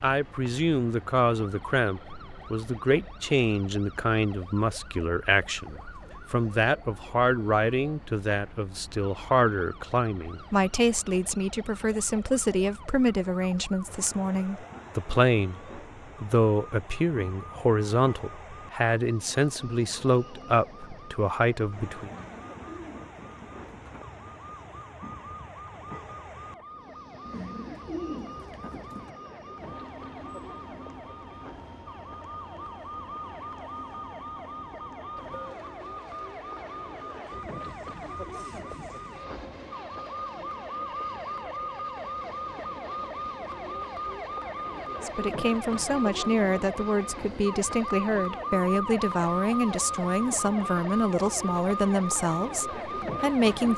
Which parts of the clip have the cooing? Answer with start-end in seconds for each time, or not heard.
22.0-24.1, 27.2-29.1.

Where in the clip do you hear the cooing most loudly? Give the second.
28 s.